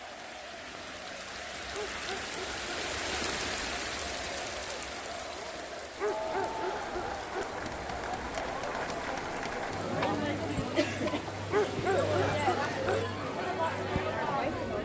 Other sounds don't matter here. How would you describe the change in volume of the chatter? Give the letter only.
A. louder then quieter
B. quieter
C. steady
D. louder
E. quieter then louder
D.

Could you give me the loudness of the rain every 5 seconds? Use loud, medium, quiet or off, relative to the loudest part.
loud, medium, medium.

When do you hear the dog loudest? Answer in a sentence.
The loudest moment of the dog is at 12 seconds.